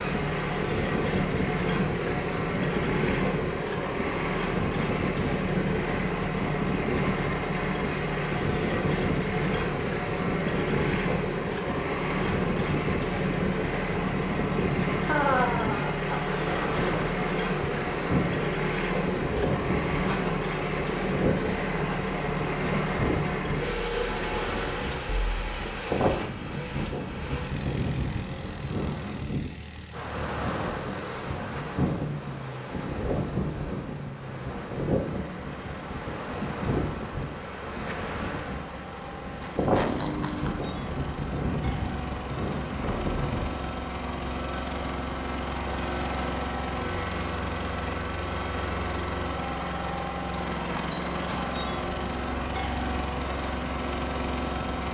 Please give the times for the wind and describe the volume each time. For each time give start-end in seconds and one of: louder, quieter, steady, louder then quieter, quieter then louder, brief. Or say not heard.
0.0-43.8 steady.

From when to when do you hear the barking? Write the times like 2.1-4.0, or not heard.
not heard.